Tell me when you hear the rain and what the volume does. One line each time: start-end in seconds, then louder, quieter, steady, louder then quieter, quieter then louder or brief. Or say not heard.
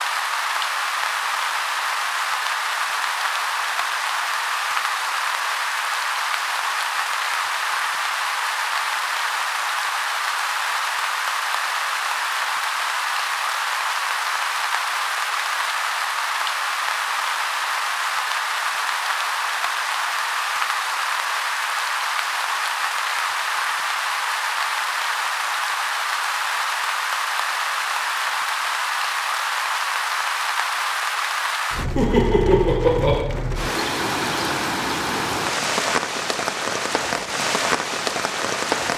0.0-38.9 steady.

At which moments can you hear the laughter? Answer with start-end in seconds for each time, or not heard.
31.9-33.2.